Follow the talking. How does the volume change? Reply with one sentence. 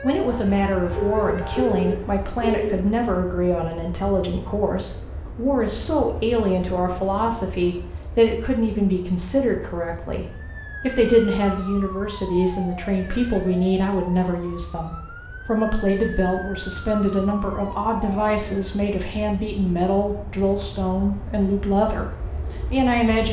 The volume of the talking stays about the same.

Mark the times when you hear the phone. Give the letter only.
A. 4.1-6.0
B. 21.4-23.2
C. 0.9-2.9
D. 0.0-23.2
C.